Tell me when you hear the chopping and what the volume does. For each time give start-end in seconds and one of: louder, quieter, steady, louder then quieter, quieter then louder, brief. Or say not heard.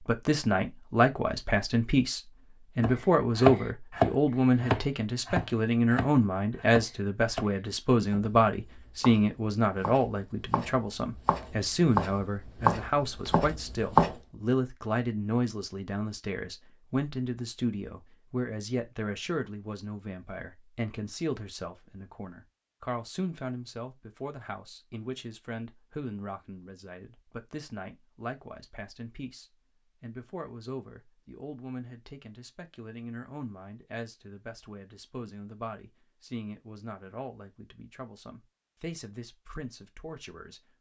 2.8-14.2 quieter then louder.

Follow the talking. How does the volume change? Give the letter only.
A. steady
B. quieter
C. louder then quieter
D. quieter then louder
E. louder
B.